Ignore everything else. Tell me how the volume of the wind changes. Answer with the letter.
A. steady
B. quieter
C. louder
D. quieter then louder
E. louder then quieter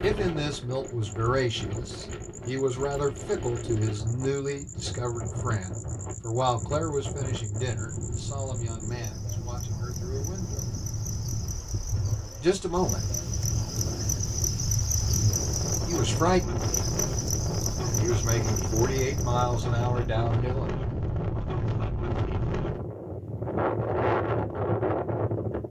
C.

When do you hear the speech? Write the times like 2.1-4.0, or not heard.
0.0-10.7, 12.4-13.0, 15.2-16.6, 17.9-20.7.